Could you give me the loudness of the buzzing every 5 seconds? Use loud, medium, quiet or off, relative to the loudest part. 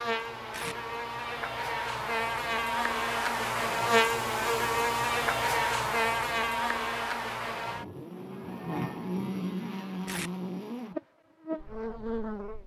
loud, loud, medium.